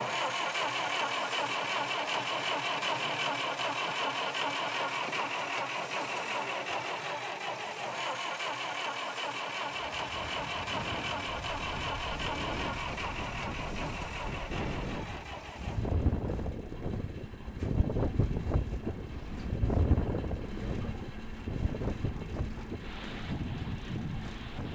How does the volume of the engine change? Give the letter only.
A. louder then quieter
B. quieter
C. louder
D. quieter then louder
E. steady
B.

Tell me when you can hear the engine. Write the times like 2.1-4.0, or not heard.
0.0-24.7.